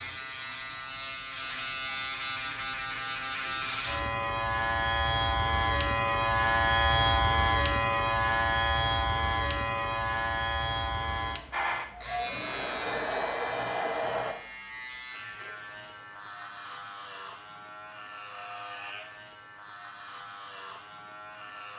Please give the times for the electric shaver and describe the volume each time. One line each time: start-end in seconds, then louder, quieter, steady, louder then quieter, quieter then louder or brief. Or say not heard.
0.0-21.7 louder then quieter.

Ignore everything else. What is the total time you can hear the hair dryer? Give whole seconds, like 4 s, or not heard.
3 s.